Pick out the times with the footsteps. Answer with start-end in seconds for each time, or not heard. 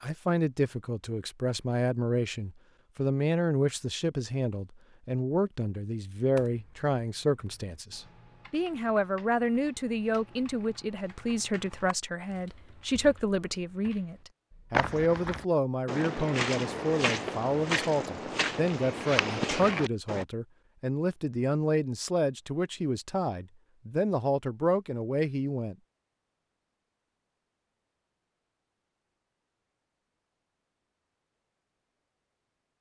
14.7-20.2.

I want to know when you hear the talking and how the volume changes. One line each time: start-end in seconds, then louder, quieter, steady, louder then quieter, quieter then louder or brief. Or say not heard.
0.0-25.8 steady.